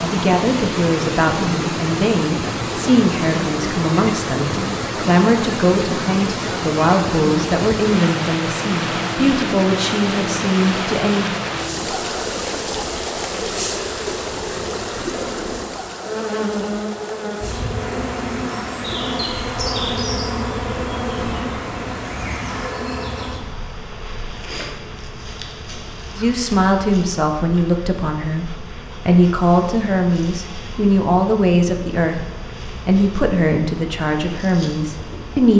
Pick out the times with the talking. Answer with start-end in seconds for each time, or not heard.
0.0-11.4, 26.1-35.5.